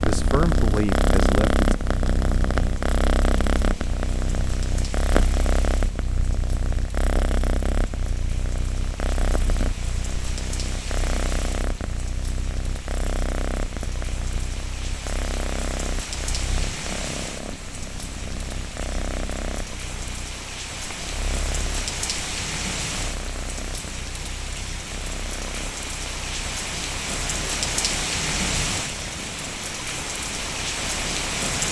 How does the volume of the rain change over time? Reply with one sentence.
The volume of the rain goes up.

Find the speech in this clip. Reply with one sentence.
The speech can be heard from 0.0 to 1.6 s.